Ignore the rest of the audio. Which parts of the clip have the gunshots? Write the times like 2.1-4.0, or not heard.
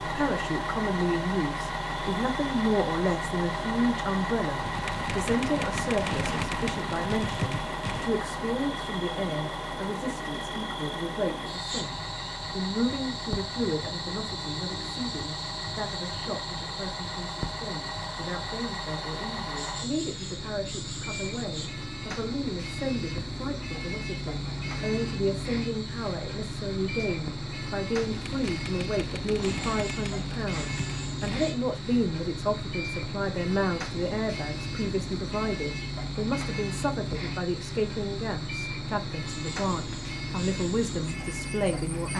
4.6-8.1, 28.1-31.5.